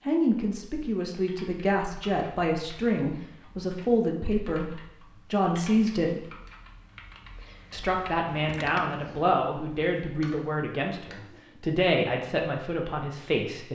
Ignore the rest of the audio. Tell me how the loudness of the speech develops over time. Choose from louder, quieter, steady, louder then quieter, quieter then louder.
steady.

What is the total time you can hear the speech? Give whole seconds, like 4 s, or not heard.
12 s.